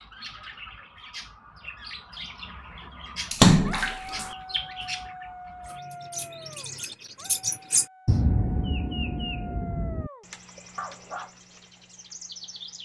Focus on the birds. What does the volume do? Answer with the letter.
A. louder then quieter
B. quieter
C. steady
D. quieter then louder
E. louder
A.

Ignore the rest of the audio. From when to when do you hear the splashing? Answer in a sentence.
The splashing can be heard from 3.3 to 4.3 s.